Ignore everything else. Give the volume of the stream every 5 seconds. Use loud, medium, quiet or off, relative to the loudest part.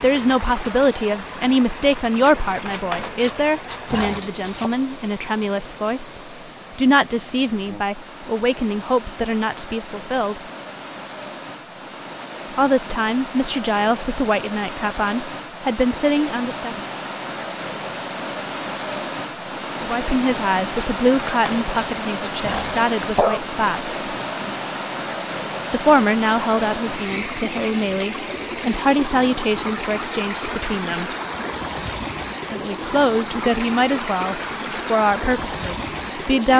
medium, medium, medium, loud, loud, loud, loud, loud.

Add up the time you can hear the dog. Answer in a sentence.
The dog can be heard for 5 seconds in total.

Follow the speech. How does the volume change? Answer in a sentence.
The loudness of the speech stays about the same.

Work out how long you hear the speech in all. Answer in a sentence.
The speech can be heard for 28 seconds in total.